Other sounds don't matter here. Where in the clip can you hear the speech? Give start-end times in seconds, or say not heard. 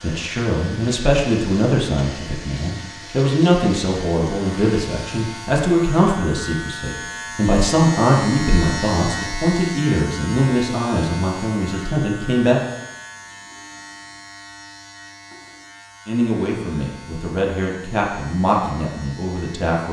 0.0-12.6, 16.1-19.8.